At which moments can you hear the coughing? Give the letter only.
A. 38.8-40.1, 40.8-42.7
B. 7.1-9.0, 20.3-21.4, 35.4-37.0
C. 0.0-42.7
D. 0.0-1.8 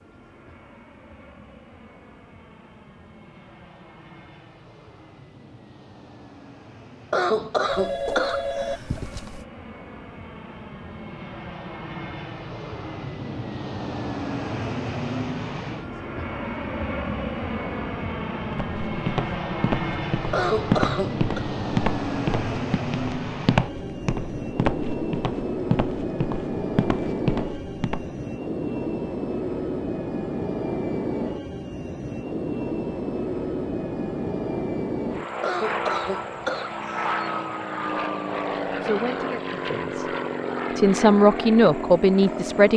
B.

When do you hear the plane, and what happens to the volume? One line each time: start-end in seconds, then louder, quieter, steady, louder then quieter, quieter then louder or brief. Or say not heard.
0.0-42.7 louder.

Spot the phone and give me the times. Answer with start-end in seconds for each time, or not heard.
7.7-9.4.